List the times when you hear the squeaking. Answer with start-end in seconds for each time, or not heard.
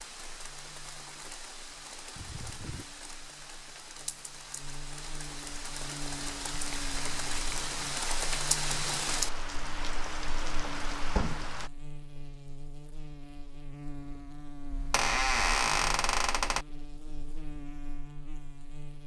2.1-2.9, 6.5-7.7, 14.7-16.6.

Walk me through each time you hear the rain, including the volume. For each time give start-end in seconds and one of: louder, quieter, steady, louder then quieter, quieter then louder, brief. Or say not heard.
0.0-11.7 louder.